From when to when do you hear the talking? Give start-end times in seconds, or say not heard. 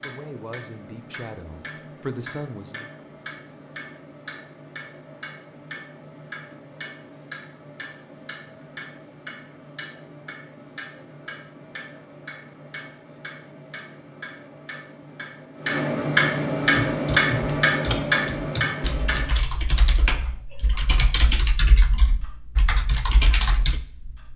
0.0-2.9.